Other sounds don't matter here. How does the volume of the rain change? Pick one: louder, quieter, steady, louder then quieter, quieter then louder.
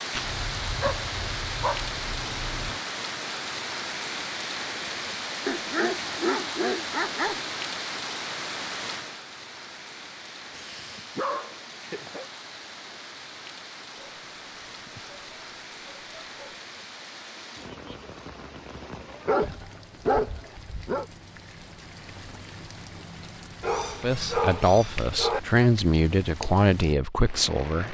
quieter.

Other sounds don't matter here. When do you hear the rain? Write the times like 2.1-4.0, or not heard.
0.0-27.8.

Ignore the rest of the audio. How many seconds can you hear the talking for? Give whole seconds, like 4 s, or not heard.
4 s.